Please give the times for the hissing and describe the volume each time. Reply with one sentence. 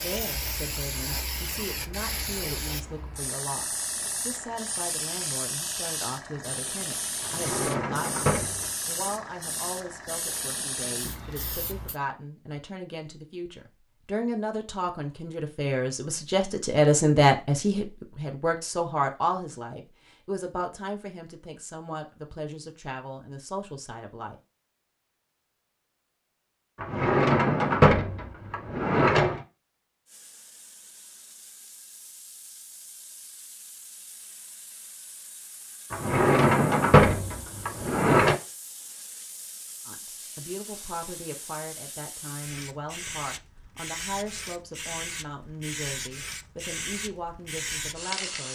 The hissing can be heard from 0.0 to 12.0 s, at a steady volume; and from 30.1 to 48.5 s, getting louder.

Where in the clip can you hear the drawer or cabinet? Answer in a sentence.
The drawer or cabinet can be heard from 7.2 to 8.8 s, from 26.8 to 29.4 s and from 35.9 to 38.4 s.